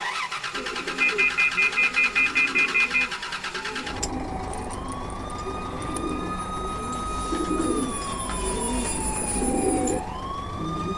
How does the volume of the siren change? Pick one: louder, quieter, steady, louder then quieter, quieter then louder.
louder.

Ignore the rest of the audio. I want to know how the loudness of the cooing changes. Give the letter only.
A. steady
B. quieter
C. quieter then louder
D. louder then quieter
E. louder
E.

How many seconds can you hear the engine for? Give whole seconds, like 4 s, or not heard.
11 s.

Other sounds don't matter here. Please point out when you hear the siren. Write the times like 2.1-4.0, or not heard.
0.0-10.9.